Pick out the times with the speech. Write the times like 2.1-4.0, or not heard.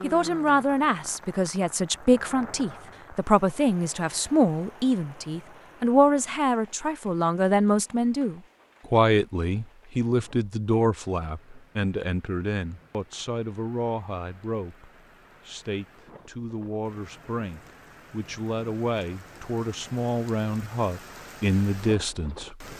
0.0-22.6.